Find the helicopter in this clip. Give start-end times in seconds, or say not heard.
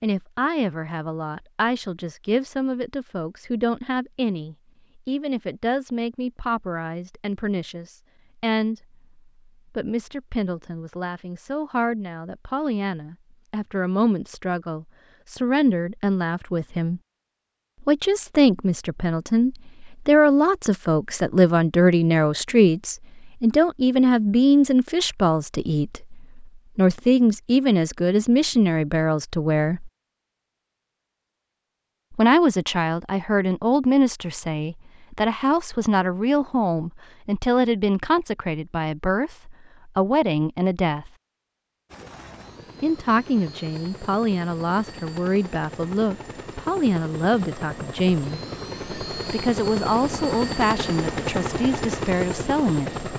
41.9-53.1.